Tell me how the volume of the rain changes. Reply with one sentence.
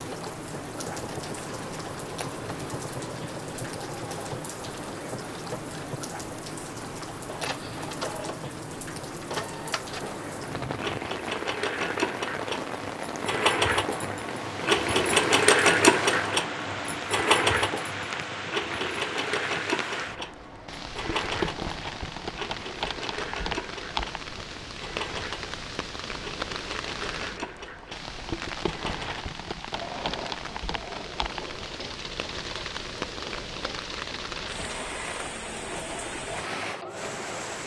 The loudness of the rain stays about the same.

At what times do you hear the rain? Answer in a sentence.
The rain can be heard from 0.0 to 37.6 s.